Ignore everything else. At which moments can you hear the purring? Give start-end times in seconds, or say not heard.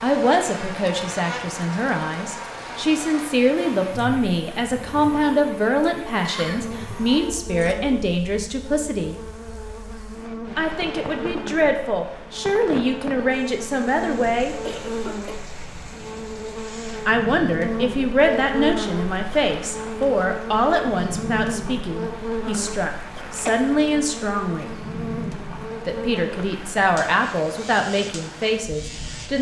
not heard.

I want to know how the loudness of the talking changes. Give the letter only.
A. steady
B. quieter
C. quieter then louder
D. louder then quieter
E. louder
A.